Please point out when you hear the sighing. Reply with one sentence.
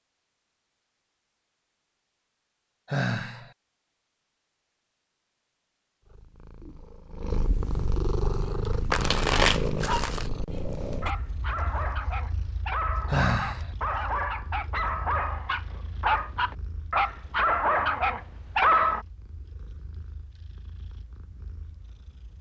You can hear the sighing from 2.9 to 3.5 s and from 13.1 to 13.7 s.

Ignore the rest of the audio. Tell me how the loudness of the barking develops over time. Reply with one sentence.
The loudness of the barking goes up.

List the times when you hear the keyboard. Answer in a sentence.
The keyboard can't be heard in this clip.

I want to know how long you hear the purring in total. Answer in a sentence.
The purring can be heard for 16 seconds in total.